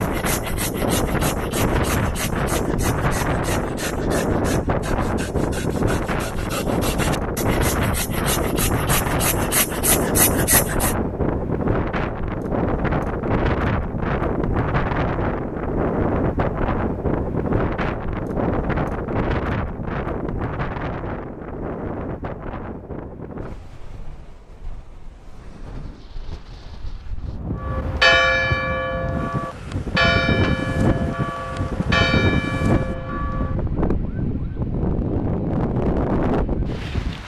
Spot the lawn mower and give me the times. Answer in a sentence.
The lawn mower can't be heard in this clip.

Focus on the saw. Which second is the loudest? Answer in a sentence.
The volume of the saw peaks at 10 seconds.